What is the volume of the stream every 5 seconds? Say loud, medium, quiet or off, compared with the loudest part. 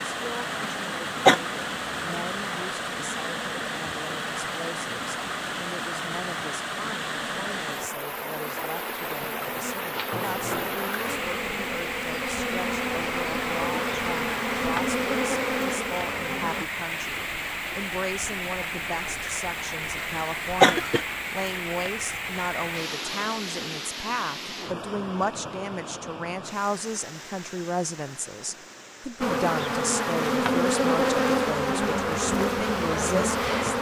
loud, loud, loud, loud, loud, medium, off.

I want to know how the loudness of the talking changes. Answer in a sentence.
The volume of the talking goes up.